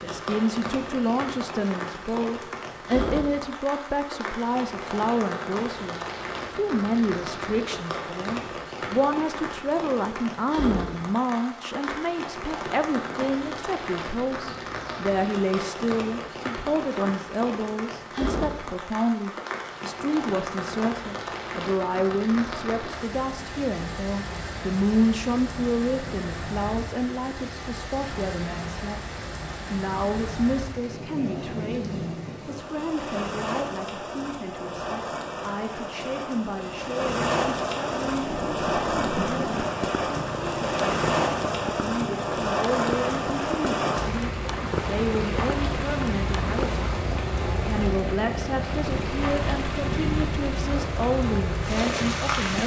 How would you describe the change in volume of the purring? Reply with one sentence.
The loudness of the purring stays about the same.